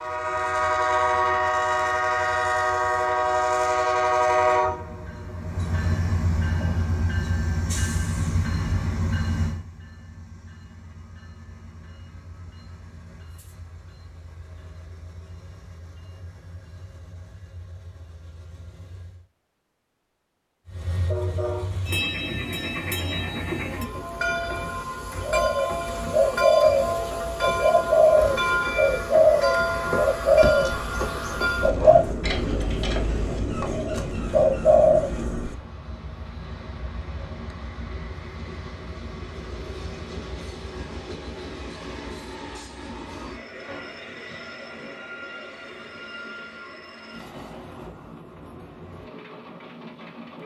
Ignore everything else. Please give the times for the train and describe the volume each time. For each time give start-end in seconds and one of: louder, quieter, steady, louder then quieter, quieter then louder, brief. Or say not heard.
0.0-19.2 quieter
20.6-50.4 quieter.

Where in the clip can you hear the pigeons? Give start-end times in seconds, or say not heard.
25.2-35.1.